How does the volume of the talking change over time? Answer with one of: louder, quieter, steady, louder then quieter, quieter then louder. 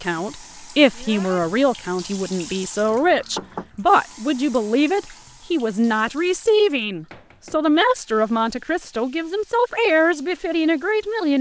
steady.